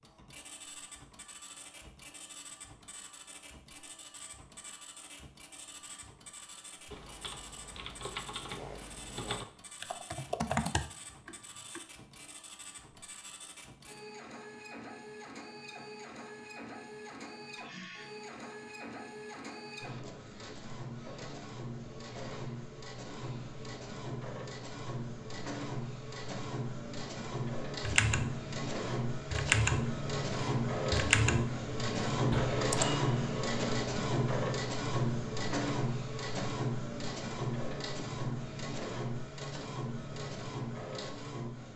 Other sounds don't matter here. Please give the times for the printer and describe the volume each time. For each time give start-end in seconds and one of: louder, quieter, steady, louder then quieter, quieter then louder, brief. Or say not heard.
0.0-41.7 louder.